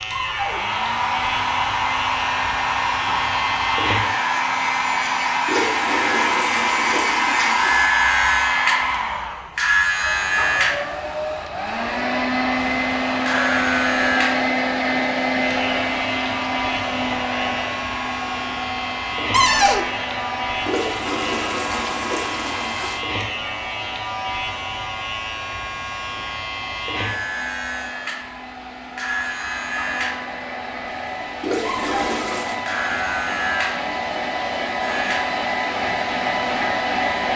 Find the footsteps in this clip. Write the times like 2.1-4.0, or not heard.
not heard.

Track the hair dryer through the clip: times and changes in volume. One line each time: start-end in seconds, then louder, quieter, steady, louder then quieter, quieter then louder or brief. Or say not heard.
0.0-37.3 quieter then louder.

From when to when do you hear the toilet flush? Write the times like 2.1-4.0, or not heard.
5.5-8.0, 20.6-23.0, 31.4-32.6.